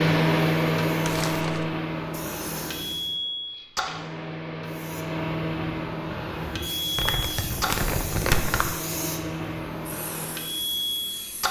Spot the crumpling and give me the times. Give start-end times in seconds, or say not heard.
1.0-1.7, 7.0-8.7.